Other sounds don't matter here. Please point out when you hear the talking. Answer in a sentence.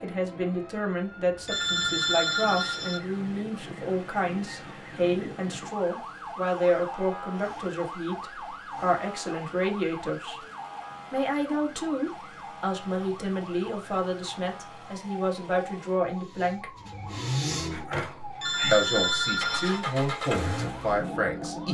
The talking can be heard from 0.0 to 10.3 s, from 11.1 to 16.7 s and from 18.7 to 21.6 s.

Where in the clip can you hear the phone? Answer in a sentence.
You can hear the phone from 1.4 to 3.0 s and from 18.4 to 19.8 s.